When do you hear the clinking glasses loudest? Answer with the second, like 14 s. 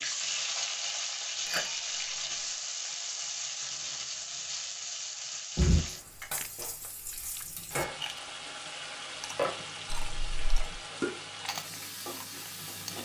6 s.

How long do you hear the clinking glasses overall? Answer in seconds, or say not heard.
2 s.